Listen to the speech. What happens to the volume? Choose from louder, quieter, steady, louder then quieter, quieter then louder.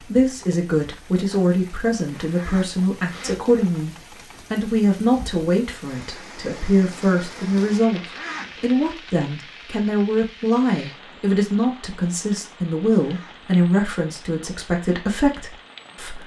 steady.